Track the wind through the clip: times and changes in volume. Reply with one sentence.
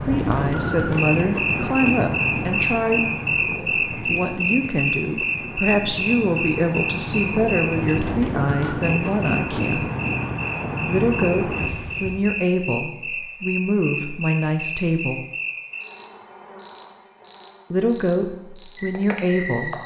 The wind can be heard from 0.0 to 12.3 s, getting quieter then louder.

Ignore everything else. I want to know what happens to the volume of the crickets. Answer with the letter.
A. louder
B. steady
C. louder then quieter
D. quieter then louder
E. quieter
E.